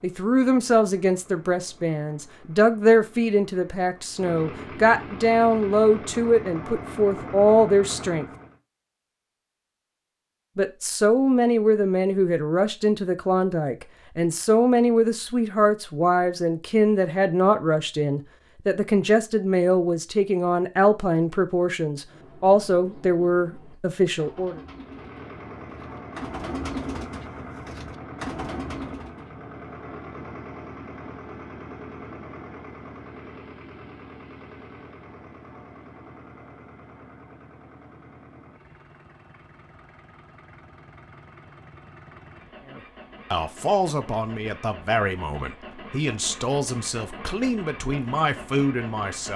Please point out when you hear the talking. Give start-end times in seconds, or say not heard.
0.0-8.2, 10.6-24.6, 42.6-49.3.